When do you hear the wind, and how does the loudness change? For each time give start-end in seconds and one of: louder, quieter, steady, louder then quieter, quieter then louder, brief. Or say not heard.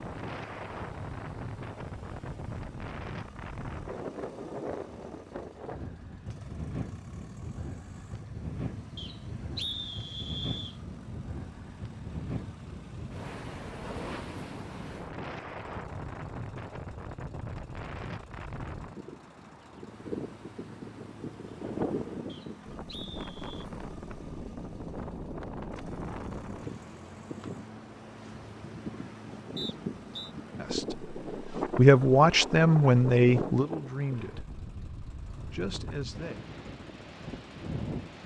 0.0-38.2 steady.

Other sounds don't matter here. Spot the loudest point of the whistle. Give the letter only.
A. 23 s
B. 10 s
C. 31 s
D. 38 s
B.